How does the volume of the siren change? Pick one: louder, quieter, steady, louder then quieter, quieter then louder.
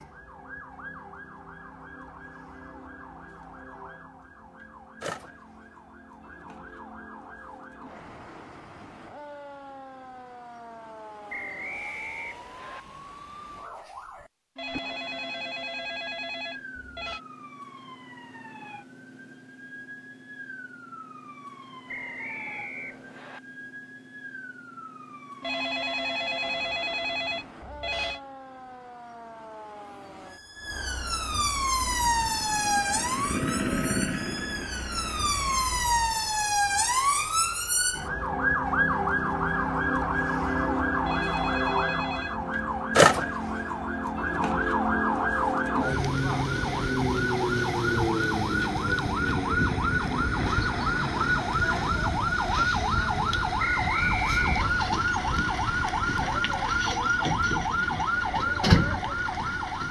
louder.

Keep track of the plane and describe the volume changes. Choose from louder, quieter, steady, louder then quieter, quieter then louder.
louder then quieter.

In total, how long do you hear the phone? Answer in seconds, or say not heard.
7 s.